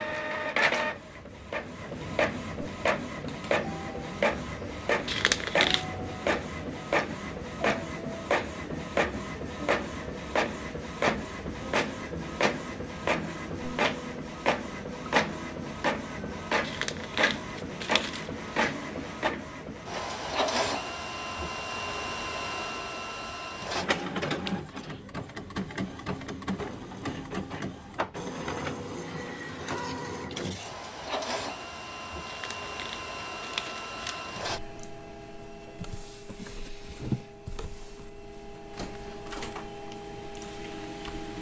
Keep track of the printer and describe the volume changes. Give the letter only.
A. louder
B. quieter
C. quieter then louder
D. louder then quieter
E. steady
B.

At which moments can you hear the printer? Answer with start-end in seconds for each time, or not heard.
0.0-41.3.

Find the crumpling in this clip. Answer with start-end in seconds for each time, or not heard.
5.0-5.8, 16.6-18.3, 32.2-34.3.